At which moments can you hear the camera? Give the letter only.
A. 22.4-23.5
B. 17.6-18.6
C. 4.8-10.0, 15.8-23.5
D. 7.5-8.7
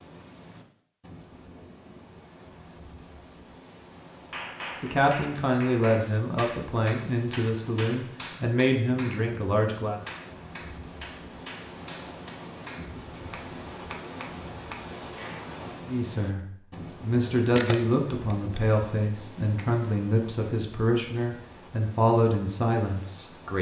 B.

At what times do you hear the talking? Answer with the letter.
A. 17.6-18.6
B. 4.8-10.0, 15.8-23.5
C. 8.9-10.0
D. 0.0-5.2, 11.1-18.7
B.